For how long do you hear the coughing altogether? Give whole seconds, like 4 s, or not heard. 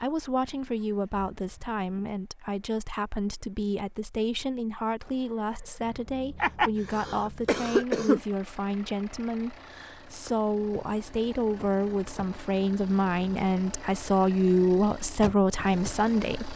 2 s.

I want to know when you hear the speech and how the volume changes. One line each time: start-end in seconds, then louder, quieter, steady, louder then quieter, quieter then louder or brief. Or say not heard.
0.0-16.5 louder.